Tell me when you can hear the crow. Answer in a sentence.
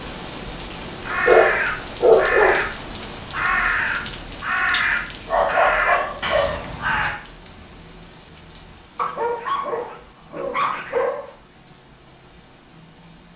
You can hear the crow from 1.0 to 7.2 s.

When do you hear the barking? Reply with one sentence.
The barking can be heard from 1.2 to 2.6 s, from 4.7 to 6.7 s and from 8.9 to 11.3 s.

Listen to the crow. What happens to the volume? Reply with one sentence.
The volume of the crow stays about the same.